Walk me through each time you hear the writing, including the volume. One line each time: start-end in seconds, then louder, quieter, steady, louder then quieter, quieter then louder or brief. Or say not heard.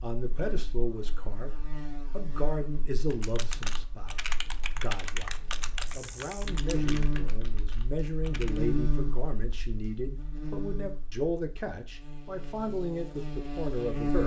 not heard.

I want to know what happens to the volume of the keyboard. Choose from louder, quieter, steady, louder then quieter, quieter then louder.
quieter.